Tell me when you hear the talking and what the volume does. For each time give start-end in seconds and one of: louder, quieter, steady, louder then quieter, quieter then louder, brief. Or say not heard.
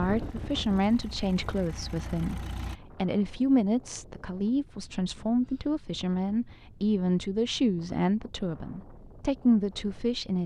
0.0-10.4 steady.